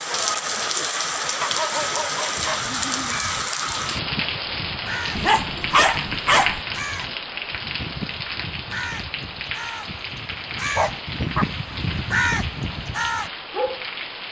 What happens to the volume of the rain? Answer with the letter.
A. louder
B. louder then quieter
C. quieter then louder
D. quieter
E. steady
D.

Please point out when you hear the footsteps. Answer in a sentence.
The footsteps can't be heard in this clip.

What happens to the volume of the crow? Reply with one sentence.
The volume of the crow goes up.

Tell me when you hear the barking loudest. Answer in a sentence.
The loudest moment of the barking is at 6 seconds.